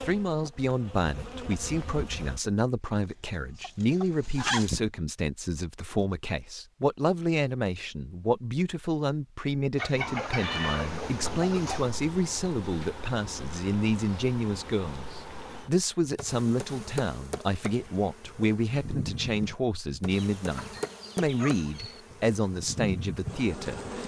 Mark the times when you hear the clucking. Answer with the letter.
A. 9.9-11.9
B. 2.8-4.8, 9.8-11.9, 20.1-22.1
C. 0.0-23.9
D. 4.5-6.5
B.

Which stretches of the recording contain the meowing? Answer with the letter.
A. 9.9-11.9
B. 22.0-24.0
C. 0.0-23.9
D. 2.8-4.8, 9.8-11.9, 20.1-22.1
A.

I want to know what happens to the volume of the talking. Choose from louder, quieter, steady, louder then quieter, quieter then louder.
steady.